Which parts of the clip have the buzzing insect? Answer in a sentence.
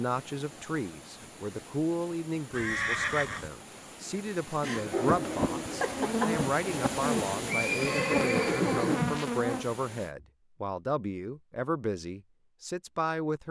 You can hear the buzzing insect from 4.7 to 9.7 s.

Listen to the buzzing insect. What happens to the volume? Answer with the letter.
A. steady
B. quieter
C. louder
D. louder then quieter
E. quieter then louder
A.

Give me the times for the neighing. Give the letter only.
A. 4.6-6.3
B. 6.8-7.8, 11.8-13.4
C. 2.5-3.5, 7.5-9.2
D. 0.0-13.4
C.